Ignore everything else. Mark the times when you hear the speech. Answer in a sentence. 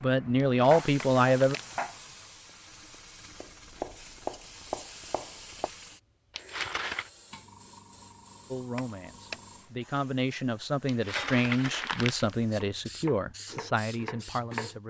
The speech can be heard from 0.0 to 1.6 s and from 8.5 to 14.8 s.